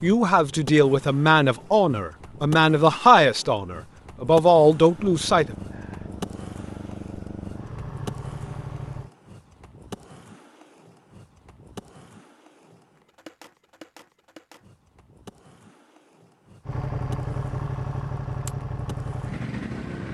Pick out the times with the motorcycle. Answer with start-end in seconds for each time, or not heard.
4.9-9.1, 16.6-20.0.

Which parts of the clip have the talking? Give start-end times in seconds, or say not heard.
0.0-5.5.